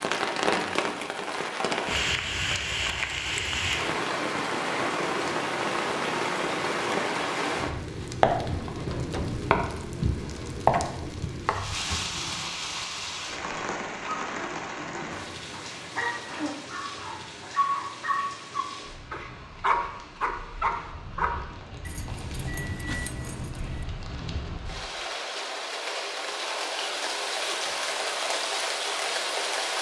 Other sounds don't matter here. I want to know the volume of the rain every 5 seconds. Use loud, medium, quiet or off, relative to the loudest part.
loud, loud, loud, quiet, quiet, loud.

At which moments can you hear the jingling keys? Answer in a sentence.
The jingling keys can be heard from 21.9 to 23.9 s.